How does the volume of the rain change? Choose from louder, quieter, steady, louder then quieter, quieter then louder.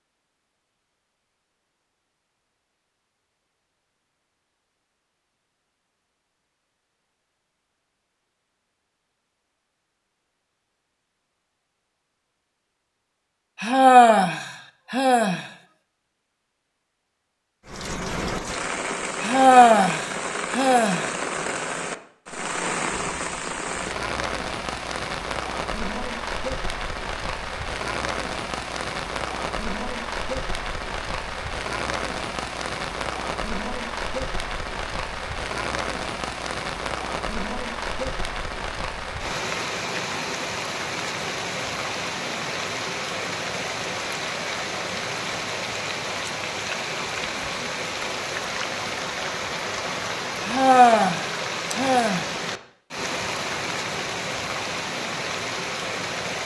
steady.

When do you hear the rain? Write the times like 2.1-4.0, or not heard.
17.6-56.4.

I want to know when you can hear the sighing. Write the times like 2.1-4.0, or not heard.
13.6-15.4, 19.2-21.1, 50.4-52.3.